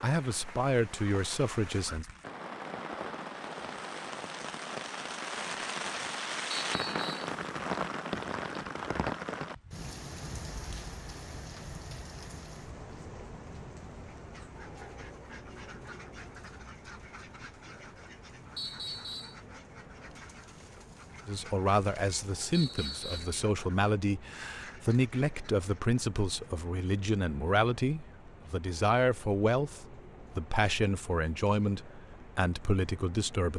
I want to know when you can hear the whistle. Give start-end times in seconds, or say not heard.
6.7-7.3, 18.6-19.4, 22.5-23.4.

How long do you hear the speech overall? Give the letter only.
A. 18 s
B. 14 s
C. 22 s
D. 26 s
B.